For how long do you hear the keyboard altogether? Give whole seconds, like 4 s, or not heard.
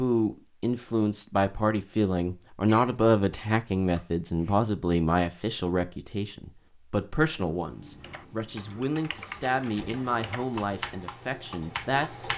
4 s.